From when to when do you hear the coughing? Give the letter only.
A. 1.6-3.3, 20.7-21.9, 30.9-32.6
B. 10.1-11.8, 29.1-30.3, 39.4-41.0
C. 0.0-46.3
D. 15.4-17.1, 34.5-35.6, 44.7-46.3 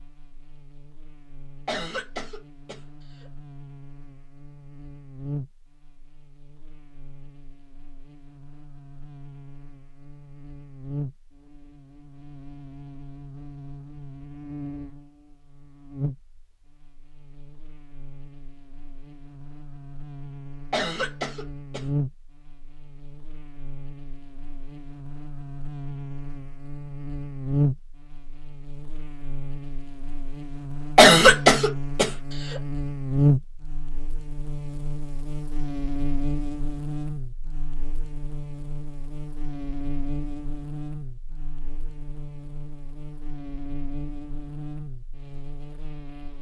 A.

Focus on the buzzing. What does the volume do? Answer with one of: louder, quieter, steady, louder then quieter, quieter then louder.
louder then quieter.